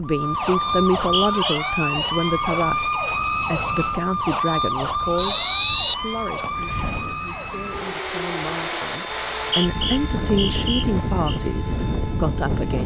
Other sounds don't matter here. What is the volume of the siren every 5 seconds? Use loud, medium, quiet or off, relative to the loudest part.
loud, medium, quiet.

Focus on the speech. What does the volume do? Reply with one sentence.
The volume of the speech goes down, then up.